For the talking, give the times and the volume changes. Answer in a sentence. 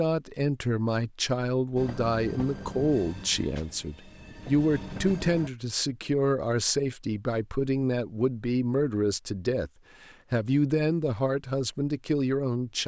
You can hear the talking from 0.0 to 12.8 s, at a steady volume.